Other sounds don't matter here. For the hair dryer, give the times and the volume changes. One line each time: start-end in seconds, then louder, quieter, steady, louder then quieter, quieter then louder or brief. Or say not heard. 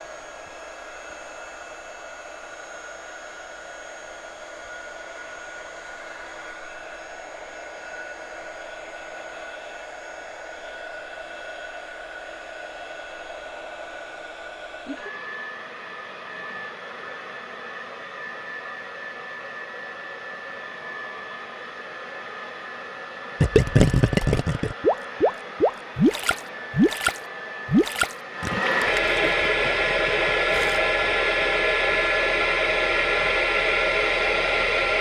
0.0-34.9 louder.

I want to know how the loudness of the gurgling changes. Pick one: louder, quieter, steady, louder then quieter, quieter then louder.
quieter.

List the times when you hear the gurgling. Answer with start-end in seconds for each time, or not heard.
23.4-30.8.